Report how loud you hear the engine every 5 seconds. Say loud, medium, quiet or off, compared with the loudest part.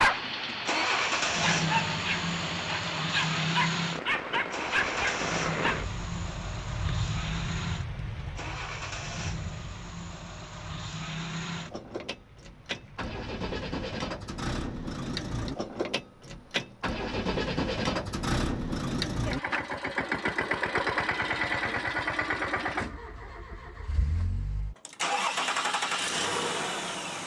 loud, medium, medium, loud, loud, loud.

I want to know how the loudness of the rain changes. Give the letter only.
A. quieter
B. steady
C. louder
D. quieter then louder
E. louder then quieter
A.